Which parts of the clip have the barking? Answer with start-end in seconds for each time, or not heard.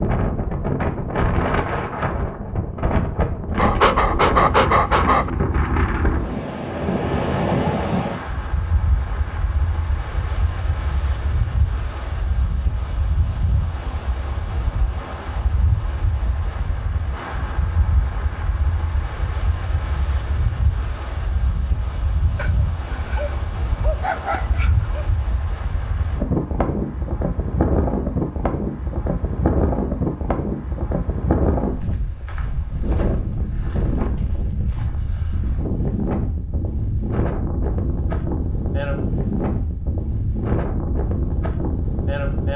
3.5-5.3, 22.4-25.1.